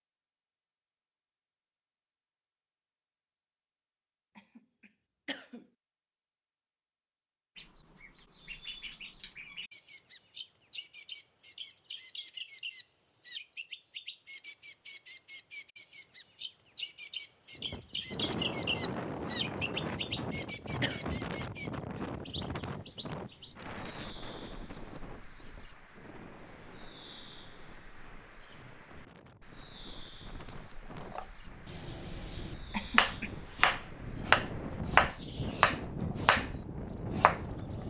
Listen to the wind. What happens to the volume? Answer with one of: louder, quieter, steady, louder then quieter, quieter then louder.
quieter then louder.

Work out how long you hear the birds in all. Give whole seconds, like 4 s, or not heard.
30 s.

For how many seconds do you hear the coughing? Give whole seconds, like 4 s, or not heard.
3 s.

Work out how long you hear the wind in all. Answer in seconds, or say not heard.
20 s.